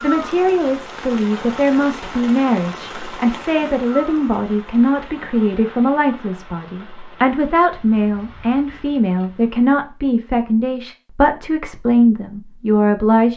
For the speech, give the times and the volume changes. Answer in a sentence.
You can hear the speech from 0.0 to 13.3 s, at a steady volume.